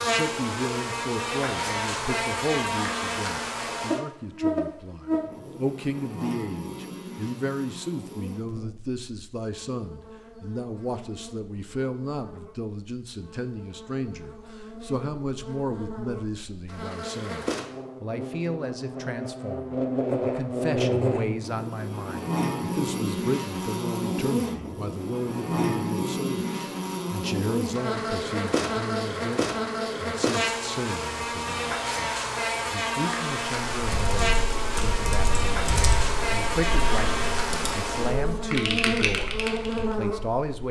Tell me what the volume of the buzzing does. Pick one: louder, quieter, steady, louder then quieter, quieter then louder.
quieter then louder.